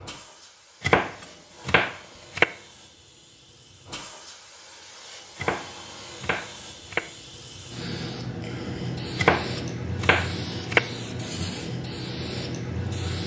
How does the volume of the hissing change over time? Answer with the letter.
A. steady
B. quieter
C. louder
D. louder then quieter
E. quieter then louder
C.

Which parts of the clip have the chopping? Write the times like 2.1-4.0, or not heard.
0.8-2.5, 5.3-7.0, 9.2-10.8.